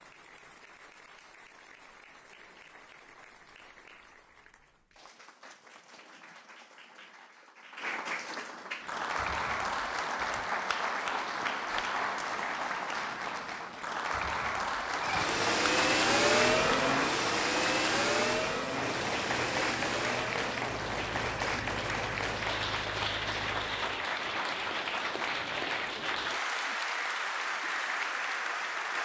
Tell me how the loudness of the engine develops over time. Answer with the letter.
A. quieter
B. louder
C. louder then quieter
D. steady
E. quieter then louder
A.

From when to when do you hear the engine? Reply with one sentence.
You can hear the engine from 14.9 to 24.0 s.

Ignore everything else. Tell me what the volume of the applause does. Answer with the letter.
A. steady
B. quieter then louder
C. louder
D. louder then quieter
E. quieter
C.